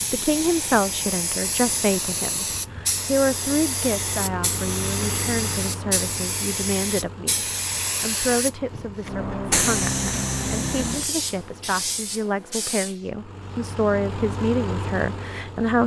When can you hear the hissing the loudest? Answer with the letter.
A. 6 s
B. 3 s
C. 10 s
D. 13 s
C.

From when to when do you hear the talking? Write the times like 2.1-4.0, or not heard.
0.1-15.8.